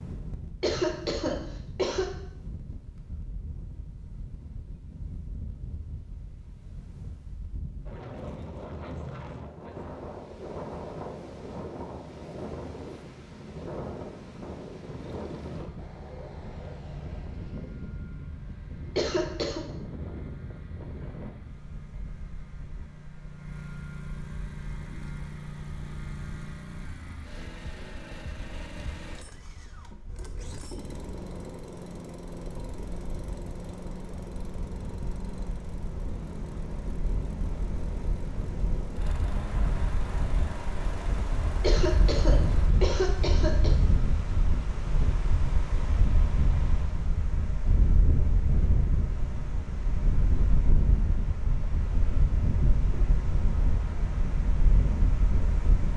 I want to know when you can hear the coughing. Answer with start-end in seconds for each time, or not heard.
0.6-2.0, 18.9-19.6, 41.6-43.7.